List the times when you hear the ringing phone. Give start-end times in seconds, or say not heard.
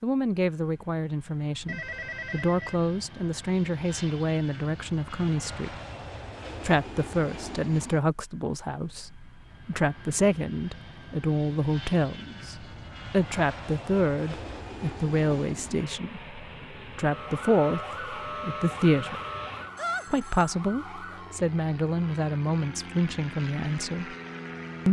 1.6-2.8, 19.8-20.6.